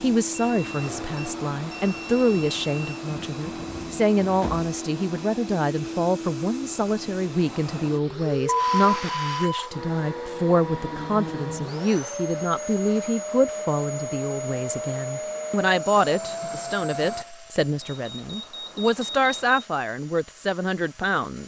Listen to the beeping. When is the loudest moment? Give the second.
9 s.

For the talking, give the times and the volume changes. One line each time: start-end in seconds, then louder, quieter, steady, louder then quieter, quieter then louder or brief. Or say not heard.
0.0-21.4 steady.